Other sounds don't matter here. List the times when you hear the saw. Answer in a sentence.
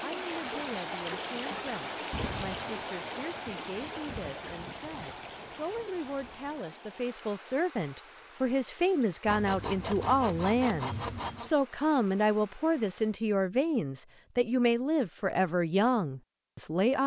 The saw can be heard from 0.3 to 2.1 s and from 9.2 to 11.5 s.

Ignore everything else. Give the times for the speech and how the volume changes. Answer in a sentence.
The speech can be heard from 0.0 to 17.0 s, getting louder.